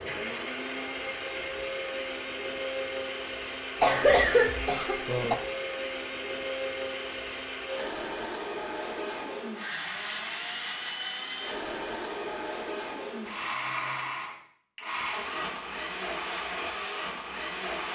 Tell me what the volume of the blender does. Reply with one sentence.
The loudness of the blender stays about the same.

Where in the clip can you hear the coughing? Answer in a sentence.
The coughing can be heard from 3.8 to 5.3 s.